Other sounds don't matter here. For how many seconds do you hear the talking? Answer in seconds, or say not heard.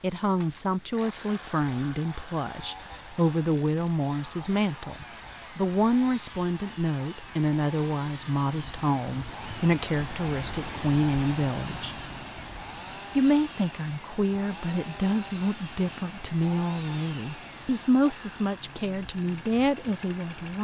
19 s.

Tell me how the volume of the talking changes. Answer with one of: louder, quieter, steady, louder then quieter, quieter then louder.
steady.